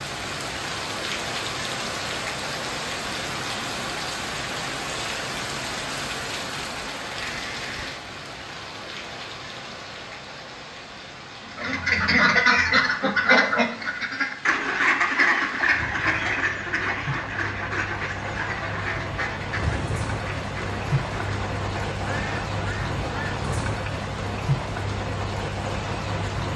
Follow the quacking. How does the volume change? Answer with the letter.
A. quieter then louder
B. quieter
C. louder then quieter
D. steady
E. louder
B.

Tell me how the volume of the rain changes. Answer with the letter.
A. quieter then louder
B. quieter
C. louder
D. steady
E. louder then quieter
A.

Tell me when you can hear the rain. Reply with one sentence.
The rain can be heard from 0.0 to 26.5 s.